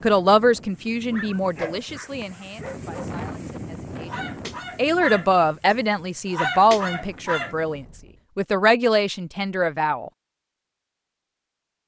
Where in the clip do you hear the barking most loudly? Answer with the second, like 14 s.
7 s.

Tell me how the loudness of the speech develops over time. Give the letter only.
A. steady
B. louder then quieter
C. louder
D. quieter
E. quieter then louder
E.